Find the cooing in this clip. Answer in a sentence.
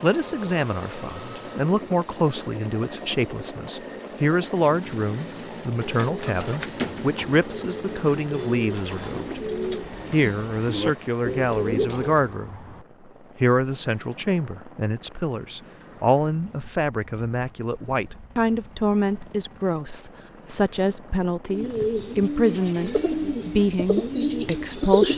You can hear the cooing from 5.6 to 12.3 s and from 21.4 to 25.1 s.